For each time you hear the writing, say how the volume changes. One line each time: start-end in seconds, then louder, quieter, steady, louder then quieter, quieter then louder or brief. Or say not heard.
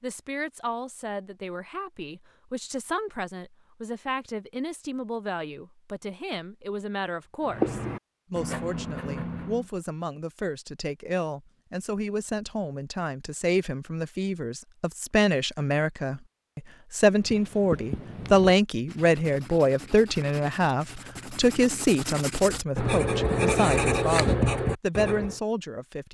7.5-9.7 brief
17.1-25.4 quieter then louder.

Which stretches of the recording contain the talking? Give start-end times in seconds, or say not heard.
0.0-26.0.